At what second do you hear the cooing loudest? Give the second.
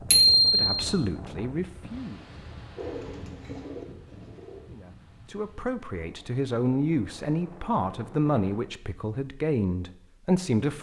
3 s.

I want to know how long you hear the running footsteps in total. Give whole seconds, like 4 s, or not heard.
not heard.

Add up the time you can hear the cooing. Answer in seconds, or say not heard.
2 s.